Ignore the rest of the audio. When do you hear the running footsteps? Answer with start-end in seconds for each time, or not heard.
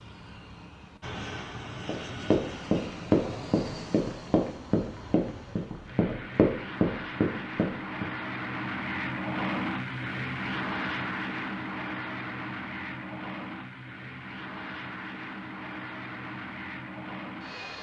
1.9-8.1.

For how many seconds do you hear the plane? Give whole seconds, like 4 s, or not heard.
18 s.